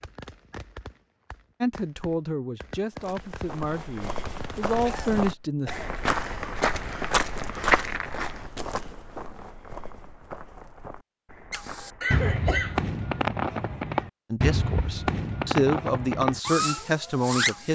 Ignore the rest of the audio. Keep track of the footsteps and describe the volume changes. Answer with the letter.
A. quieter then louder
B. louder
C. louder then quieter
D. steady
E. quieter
C.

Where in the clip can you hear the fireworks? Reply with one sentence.
The fireworks can be heard from 0.0 to 5.2 s and from 11.5 to 17.6 s.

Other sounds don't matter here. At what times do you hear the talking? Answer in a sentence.
You can hear the talking from 1.6 to 5.8 s and from 14.3 to 17.6 s.